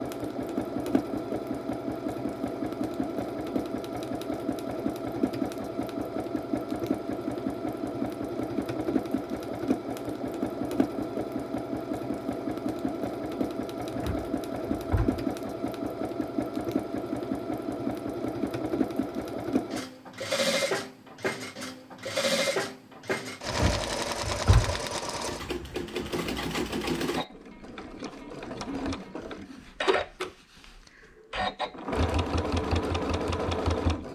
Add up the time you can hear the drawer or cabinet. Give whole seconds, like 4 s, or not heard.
3 s.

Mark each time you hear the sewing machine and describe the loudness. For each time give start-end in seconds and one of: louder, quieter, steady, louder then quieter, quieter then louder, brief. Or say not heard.
0.0-34.1 steady.